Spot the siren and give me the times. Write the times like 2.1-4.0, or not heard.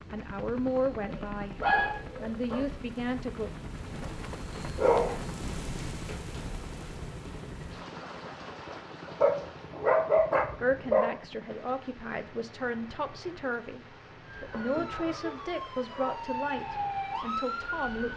14.2-18.1.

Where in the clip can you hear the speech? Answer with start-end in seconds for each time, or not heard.
0.1-3.5, 10.6-18.1.